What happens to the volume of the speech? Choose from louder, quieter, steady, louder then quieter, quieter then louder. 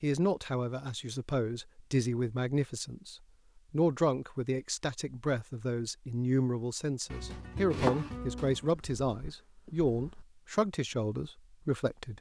steady.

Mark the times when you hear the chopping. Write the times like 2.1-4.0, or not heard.
7.1-8.7.